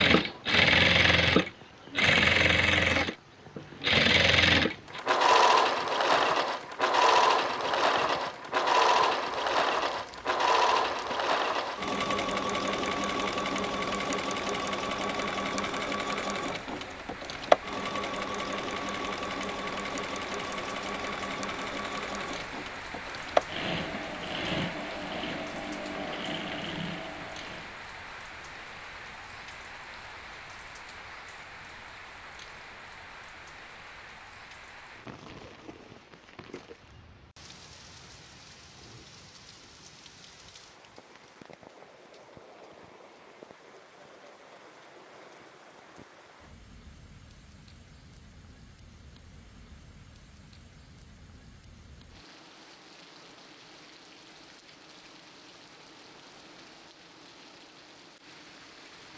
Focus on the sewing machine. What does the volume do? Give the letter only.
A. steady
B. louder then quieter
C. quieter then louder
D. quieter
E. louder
D.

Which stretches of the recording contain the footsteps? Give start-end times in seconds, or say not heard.
not heard.